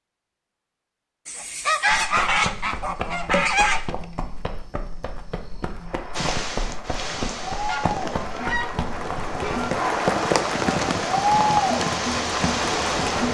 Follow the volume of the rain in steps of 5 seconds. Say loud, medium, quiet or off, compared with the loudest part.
off, medium, loud.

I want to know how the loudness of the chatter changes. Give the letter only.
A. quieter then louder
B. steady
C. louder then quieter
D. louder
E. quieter
D.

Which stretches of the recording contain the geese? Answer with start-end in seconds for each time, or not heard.
1.2-4.0, 7.7-9.7.